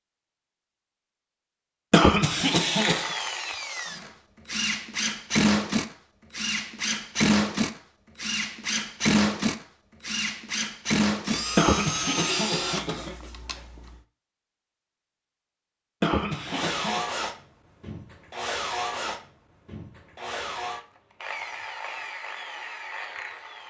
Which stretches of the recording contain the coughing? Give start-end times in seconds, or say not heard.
1.9-3.1, 11.6-13.2, 16.0-17.0.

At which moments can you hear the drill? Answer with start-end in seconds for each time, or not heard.
2.8-14.0, 16.4-23.6.